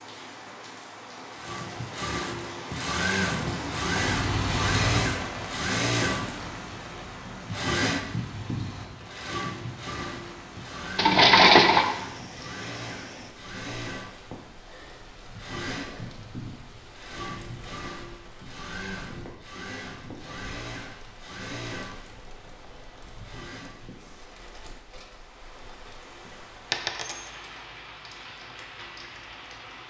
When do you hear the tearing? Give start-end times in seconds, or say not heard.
not heard.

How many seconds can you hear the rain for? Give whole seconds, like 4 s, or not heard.
30 s.